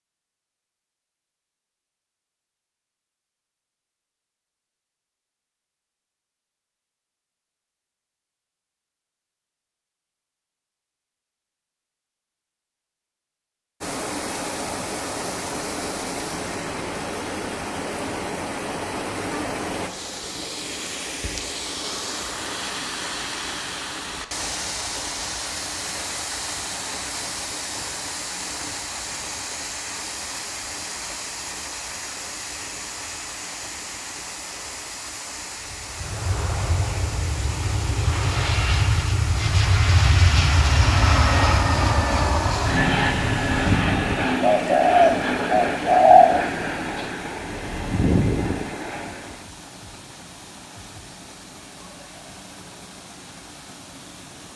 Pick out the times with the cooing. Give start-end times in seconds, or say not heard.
43.9-46.5.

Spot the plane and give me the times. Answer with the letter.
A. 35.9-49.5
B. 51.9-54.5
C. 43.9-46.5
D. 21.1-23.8
A.